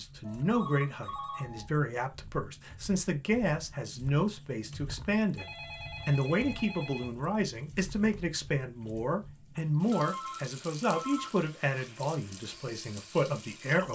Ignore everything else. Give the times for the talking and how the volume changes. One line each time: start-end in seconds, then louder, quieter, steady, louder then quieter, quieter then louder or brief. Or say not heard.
0.0-13.9 steady.